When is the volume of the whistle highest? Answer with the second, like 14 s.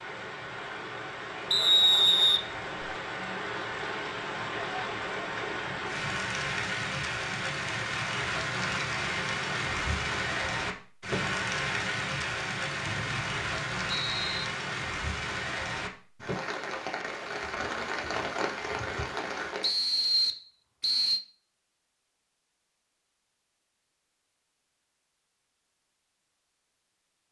2 s.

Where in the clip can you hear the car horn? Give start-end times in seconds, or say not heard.
not heard.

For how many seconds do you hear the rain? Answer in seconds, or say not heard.
20 s.